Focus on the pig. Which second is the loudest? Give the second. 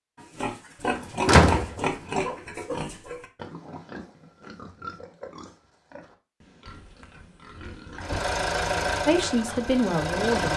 1 s.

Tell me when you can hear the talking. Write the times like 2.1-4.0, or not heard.
9.1-10.5.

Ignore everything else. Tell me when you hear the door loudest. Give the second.
1 s.